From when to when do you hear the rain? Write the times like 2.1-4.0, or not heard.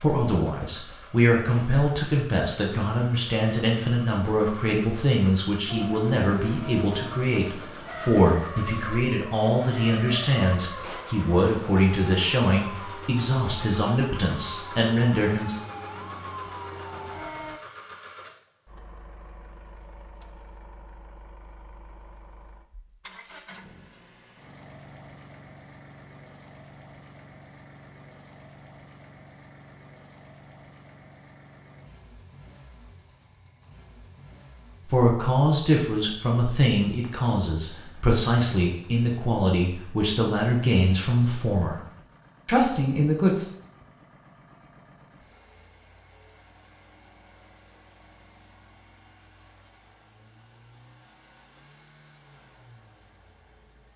not heard.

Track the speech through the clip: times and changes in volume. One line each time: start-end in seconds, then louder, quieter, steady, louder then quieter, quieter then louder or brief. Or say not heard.
0.0-15.6 steady
34.9-41.8 steady
42.5-43.5 brief.